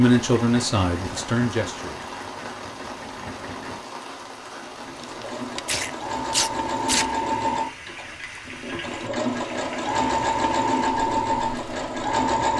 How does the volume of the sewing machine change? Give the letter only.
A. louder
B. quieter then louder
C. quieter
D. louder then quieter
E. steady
A.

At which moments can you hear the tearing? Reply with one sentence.
The tearing can be heard from 5.0 to 7.2 s.